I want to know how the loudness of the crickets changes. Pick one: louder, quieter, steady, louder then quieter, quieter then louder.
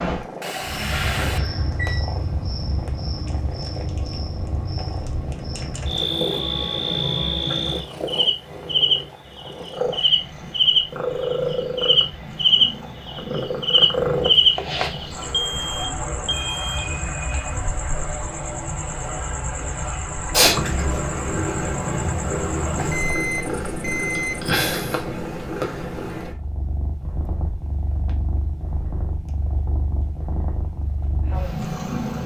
louder then quieter.